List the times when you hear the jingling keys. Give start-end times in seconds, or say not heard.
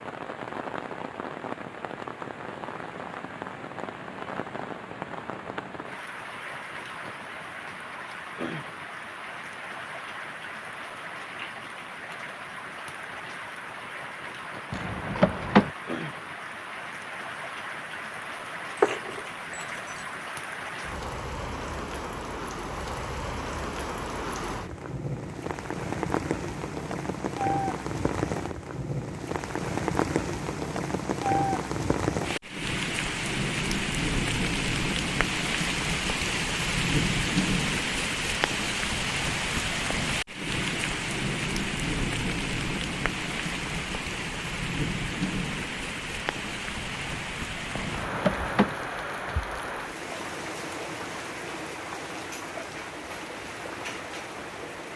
14.7-15.7, 18.8-20.1, 47.8-48.8.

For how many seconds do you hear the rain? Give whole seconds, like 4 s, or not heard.
55 s.